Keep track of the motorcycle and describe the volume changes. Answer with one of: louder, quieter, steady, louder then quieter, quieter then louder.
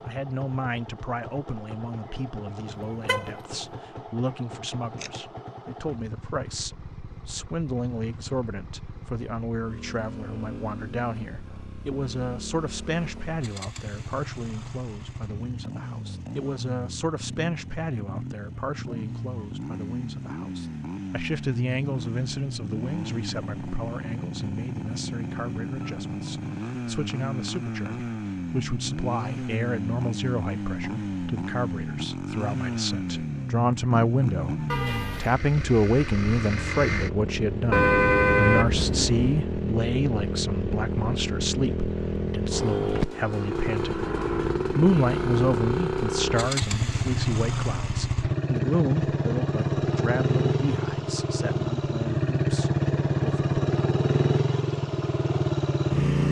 louder.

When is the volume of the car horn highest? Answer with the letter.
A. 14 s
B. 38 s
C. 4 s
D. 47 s
B.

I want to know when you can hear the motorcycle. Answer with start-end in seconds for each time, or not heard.
0.0-56.2.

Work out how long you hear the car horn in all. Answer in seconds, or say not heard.
3 s.